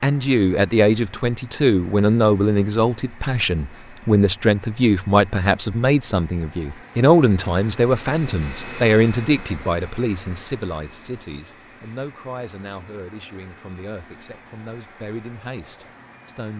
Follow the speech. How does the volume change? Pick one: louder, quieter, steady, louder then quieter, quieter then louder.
quieter.